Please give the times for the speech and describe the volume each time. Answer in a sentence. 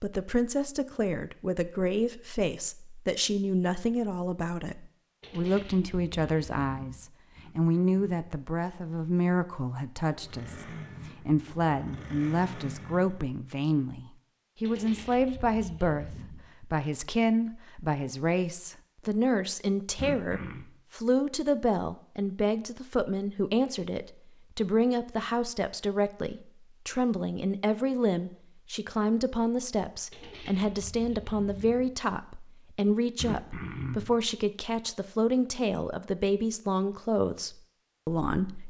You can hear the speech from 0.0 to 38.6 s, at a steady volume.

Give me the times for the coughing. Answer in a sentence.
The coughing can be heard from 7.3 to 8.2 s, from 19.9 to 20.6 s and from 33.1 to 34.1 s.